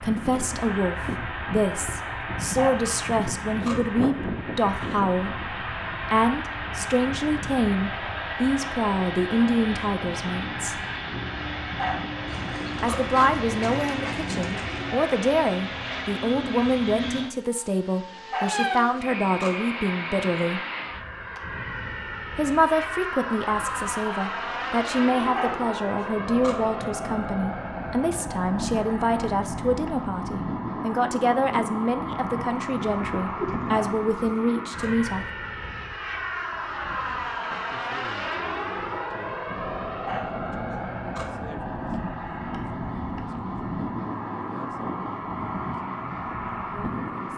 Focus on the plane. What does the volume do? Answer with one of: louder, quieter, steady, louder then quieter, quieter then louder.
steady.